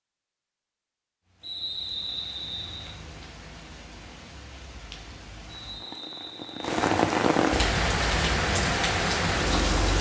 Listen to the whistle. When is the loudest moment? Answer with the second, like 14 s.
2 s.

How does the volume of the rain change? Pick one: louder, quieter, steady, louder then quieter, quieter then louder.
louder.